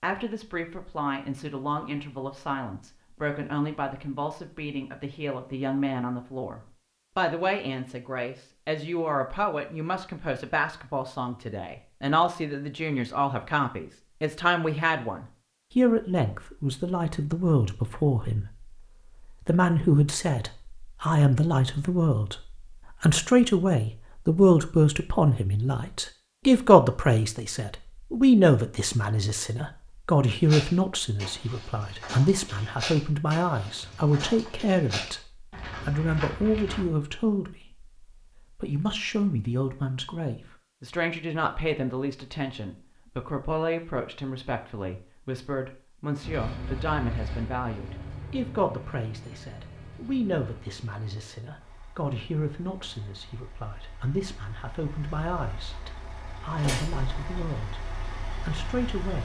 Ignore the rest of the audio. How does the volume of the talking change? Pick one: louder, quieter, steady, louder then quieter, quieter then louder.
louder then quieter.